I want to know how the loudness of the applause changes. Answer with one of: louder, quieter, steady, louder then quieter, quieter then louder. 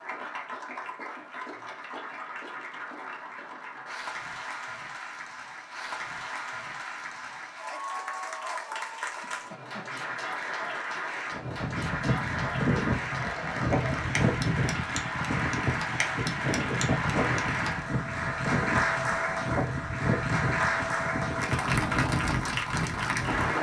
louder.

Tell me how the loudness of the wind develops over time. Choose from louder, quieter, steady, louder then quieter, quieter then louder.
steady.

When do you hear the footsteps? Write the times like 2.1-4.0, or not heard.
not heard.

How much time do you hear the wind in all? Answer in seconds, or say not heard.
12 s.